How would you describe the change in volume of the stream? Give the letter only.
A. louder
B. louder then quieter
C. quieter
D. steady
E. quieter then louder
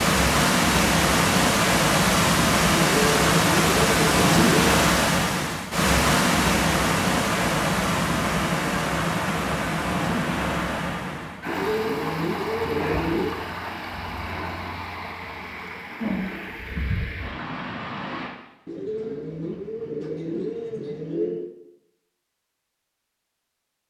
C.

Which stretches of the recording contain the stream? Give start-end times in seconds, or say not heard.
0.0-18.3.